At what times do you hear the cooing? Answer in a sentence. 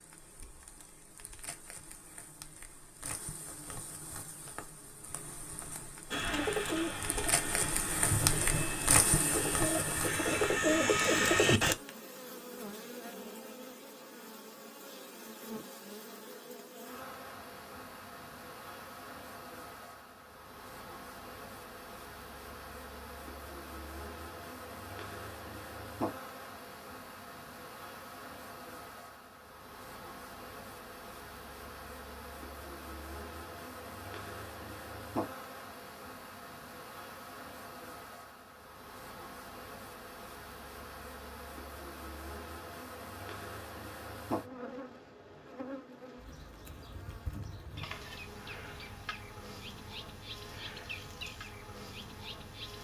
You can hear the cooing from 6.1 to 11.8 s.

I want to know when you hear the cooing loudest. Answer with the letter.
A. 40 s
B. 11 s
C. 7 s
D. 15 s
B.